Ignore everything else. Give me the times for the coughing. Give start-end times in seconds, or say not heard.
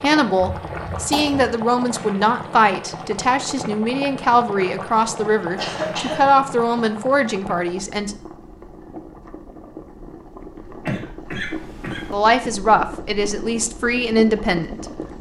0.4-1.4, 5.5-6.3, 10.8-12.1.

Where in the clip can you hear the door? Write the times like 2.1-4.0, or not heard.
not heard.